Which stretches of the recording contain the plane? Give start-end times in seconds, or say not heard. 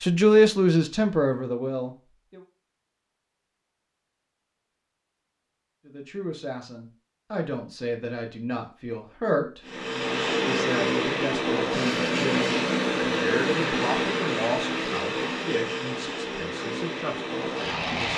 9.7-18.1.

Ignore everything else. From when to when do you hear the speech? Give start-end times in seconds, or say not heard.
0.0-2.4, 5.8-18.1.